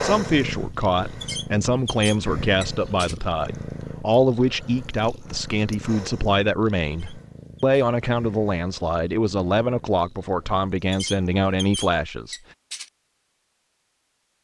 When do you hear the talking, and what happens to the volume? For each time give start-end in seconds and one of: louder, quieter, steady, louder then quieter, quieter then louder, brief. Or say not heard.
0.0-12.4 steady.